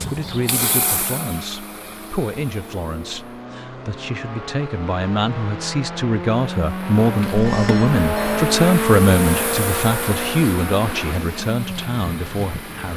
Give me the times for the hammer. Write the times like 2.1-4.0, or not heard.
not heard.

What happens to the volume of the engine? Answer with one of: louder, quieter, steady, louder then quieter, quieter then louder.
louder then quieter.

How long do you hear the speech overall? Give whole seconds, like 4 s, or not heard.
13 s.